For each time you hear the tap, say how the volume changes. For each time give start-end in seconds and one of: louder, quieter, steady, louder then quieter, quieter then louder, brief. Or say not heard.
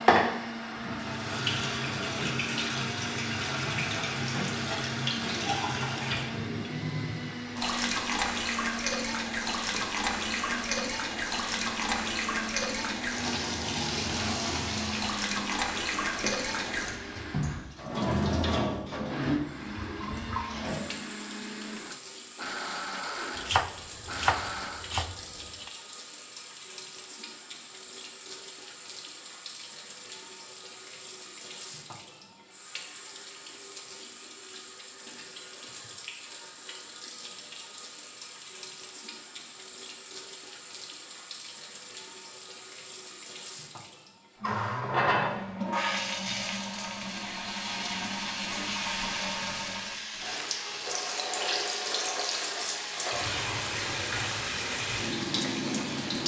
0.0-56.2 quieter then louder.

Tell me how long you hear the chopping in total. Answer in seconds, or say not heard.
2 s.